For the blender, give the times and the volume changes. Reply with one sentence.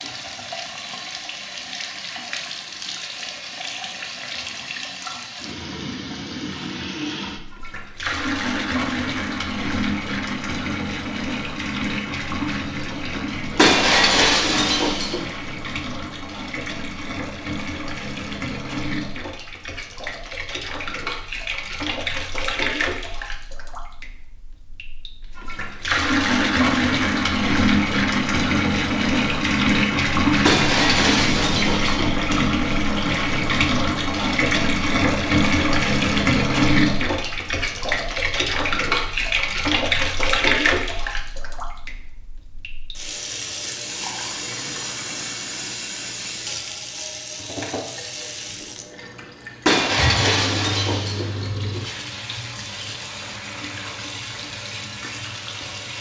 The blender can't be heard in this clip.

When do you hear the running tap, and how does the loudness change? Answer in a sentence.
The running tap can be heard from 0.0 to 55.9 s, getting louder then quieter.